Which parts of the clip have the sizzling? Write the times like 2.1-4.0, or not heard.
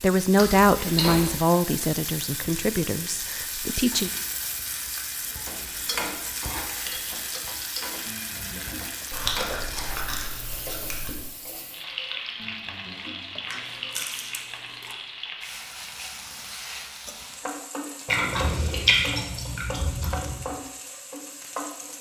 0.0-21.9.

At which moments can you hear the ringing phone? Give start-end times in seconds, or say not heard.
8.1-9.1, 12.3-14.2.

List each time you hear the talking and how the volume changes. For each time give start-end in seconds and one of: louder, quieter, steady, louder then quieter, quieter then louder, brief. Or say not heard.
0.0-4.1 quieter.